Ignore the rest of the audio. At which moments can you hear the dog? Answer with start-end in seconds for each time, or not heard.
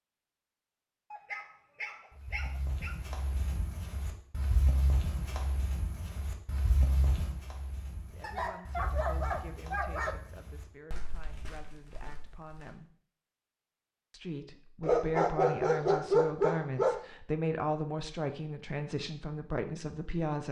1.1-3.0, 8.2-10.2, 14.8-17.0.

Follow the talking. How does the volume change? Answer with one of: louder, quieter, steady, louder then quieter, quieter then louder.
louder.